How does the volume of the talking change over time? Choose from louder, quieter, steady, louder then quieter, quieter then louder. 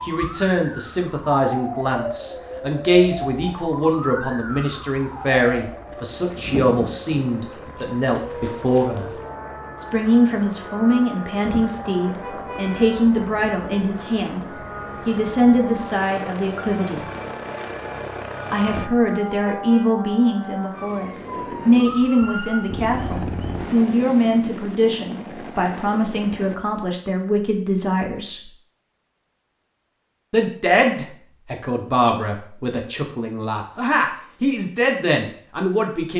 steady.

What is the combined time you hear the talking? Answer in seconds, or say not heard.
32 s.